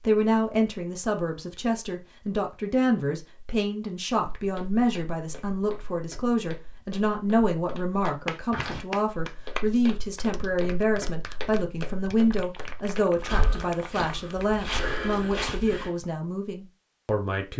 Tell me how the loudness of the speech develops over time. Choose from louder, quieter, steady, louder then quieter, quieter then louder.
steady.